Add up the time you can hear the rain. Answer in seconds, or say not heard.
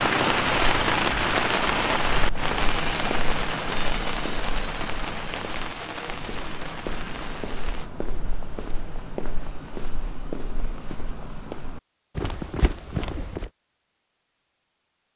8 s.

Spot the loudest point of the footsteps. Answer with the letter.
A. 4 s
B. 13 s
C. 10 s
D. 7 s
B.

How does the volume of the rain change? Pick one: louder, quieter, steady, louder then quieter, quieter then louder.
quieter.